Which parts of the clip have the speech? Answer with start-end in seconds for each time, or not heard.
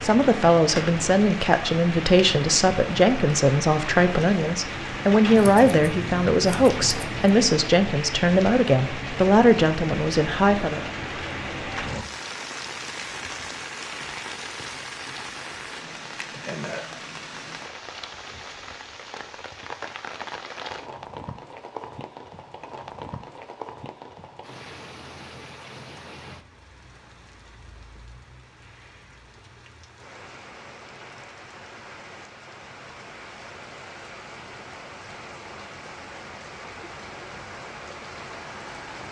0.0-10.8.